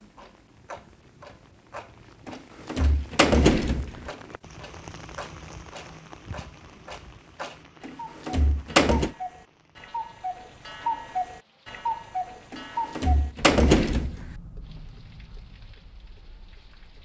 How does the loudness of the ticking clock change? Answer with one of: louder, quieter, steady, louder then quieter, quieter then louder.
louder then quieter.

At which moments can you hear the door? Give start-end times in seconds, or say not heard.
2.2-4.1, 7.8-9.2, 12.5-14.3.